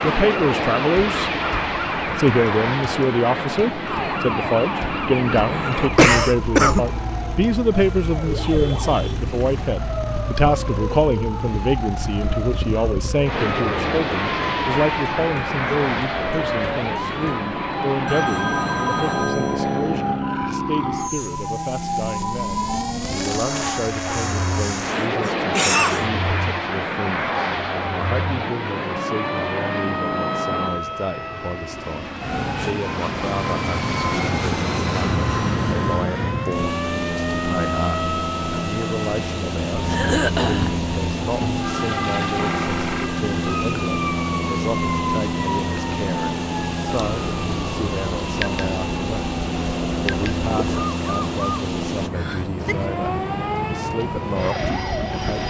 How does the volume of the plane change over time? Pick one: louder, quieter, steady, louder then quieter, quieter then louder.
steady.